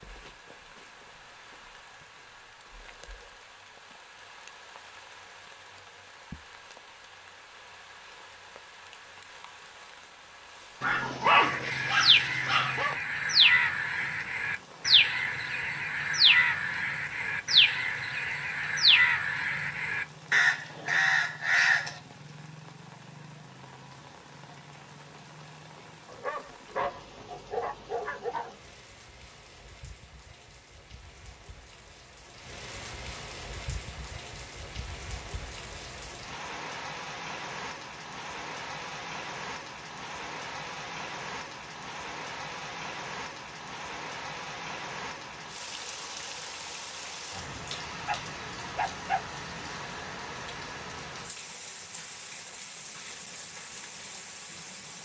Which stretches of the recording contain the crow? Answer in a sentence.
You can hear the crow from 11.2 to 21.9 s.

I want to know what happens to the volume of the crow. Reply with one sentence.
The loudness of the crow stays about the same.